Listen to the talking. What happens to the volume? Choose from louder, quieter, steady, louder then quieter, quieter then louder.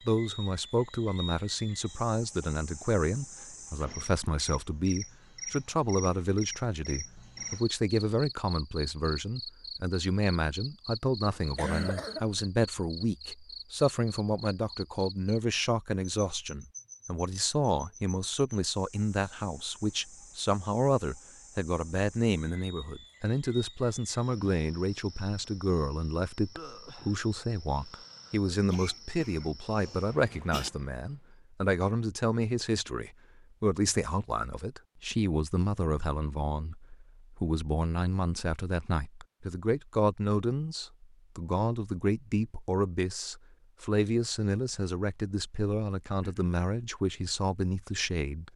steady.